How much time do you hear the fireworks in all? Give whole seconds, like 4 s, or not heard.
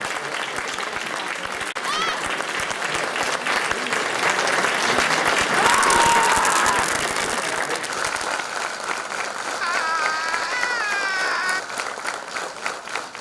3 s.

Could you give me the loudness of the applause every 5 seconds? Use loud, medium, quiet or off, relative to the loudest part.
loud, loud, medium.